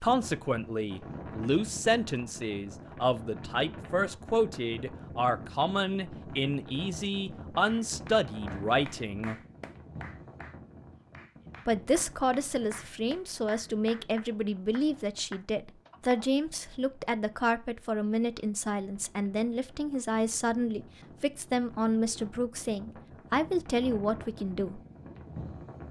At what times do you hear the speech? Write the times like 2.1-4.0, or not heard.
0.0-9.3, 11.7-24.8.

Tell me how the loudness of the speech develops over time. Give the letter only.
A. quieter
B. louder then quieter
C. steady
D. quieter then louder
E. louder
C.